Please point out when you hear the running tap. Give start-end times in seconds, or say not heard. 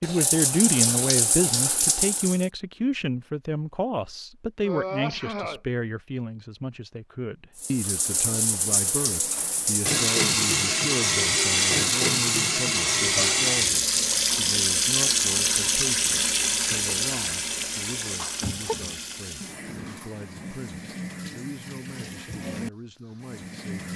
0.0-2.5, 7.5-23.9.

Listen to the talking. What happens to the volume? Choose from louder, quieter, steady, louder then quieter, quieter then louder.
quieter.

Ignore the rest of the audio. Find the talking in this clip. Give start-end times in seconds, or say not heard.
0.0-23.8.